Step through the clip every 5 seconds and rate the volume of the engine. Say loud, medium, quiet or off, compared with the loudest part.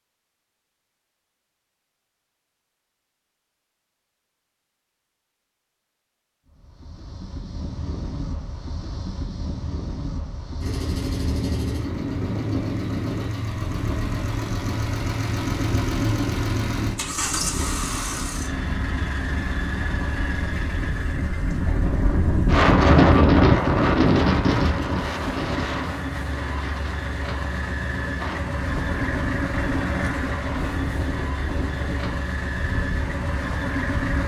off, off, loud, loud, medium, loud, loud.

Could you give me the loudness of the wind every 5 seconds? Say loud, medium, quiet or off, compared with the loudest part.
off, quiet, quiet, quiet, loud, quiet, quiet.